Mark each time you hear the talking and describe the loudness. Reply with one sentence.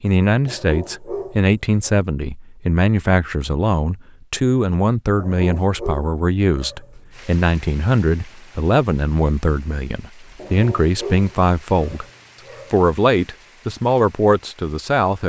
You can hear the talking from 0.0 to 12.1 s, at a steady volume; and briefly from 12.7 to 15.2 s.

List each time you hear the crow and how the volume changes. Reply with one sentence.
You can't hear the crow here.